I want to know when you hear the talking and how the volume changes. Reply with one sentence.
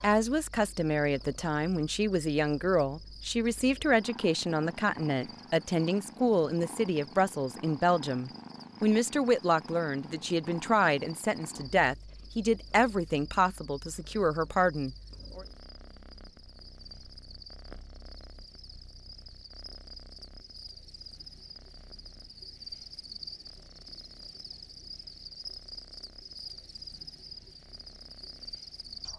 You can hear the talking from 0.0 to 15.4 s, at a steady volume.